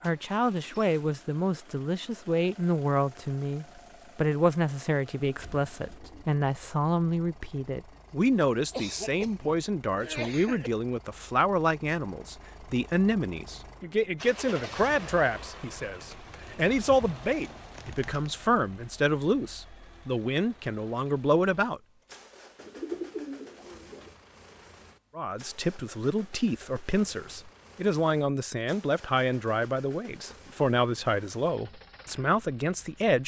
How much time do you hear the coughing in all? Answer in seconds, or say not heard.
2 s.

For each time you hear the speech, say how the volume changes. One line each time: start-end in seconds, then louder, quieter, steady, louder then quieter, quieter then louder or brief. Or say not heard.
0.0-21.8 steady
25.1-33.2 steady.